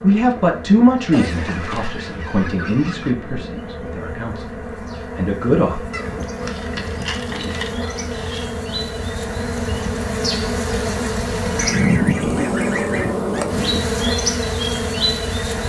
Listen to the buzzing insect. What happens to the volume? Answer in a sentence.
The volume of the buzzing insect goes up.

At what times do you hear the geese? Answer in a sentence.
You can hear the geese from 1.1 to 3.1 s, from 5.9 to 8.5 s and from 11.6 to 13.4 s.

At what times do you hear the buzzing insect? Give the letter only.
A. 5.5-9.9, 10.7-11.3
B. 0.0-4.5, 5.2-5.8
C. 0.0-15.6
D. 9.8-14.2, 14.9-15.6
C.